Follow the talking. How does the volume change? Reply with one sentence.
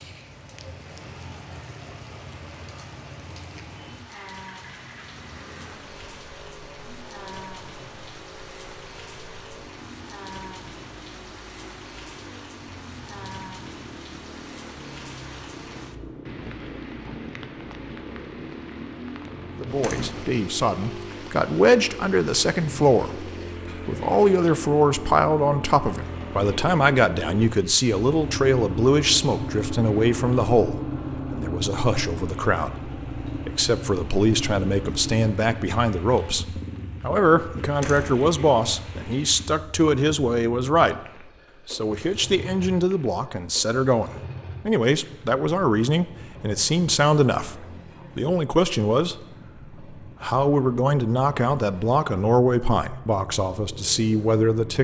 The volume of the talking stays about the same.